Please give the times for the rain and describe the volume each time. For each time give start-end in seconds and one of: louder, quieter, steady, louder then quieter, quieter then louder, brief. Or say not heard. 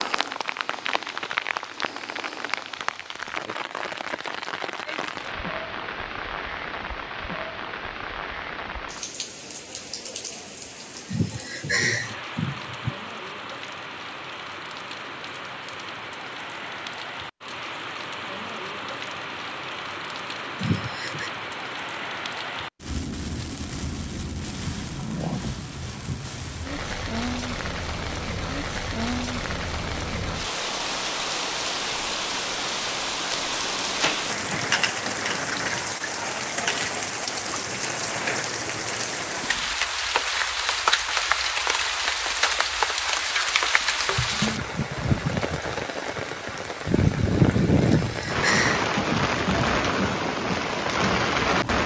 0.0-51.8 louder.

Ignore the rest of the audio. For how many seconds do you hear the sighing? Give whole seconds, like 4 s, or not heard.
4 s.